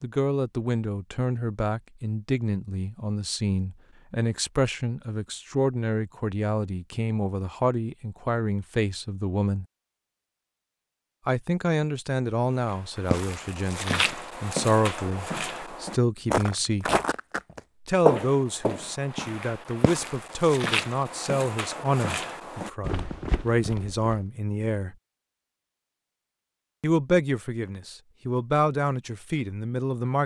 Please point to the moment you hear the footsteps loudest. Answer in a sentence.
The volume of the footsteps peaks at 18 seconds.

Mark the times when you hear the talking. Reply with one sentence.
You can hear the talking from 0.0 to 9.7 s, from 11.2 to 16.9 s, from 17.9 to 24.9 s and from 26.8 to 30.2 s.